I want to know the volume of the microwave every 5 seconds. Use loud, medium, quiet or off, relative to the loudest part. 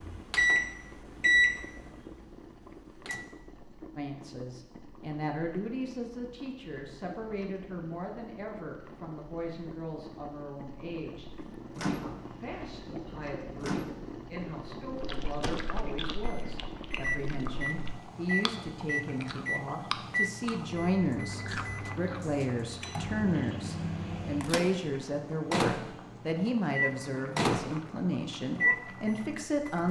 loud, off, medium, medium, medium, loud.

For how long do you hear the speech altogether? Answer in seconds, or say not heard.
25 s.